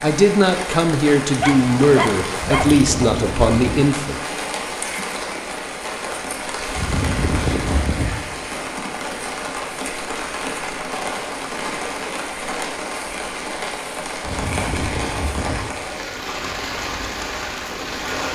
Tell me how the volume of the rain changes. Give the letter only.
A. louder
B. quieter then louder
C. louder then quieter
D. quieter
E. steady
E.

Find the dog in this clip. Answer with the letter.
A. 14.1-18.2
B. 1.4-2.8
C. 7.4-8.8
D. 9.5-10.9
B.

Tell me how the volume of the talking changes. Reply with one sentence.
The volume of the talking stays about the same.